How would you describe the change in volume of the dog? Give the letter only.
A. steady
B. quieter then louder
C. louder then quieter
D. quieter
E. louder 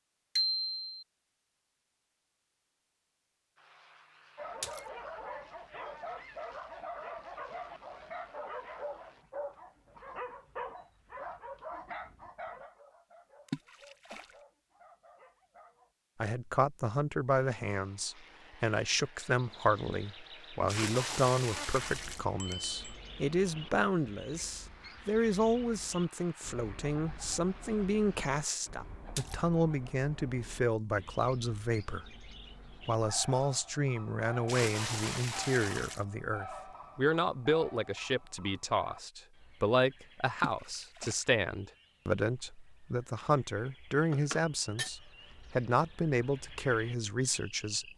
D.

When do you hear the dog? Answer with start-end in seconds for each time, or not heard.
4.3-15.9.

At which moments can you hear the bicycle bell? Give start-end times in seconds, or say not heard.
0.3-0.9, 22.4-22.9, 44.1-44.9.